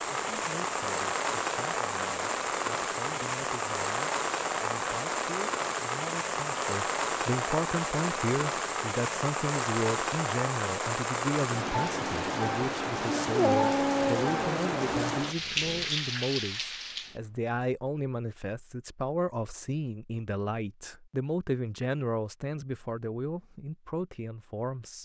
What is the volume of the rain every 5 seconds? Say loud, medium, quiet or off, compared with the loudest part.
loud, loud, loud, loud, off.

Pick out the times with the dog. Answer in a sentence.
You can hear the dog from 13.3 to 15.8 s.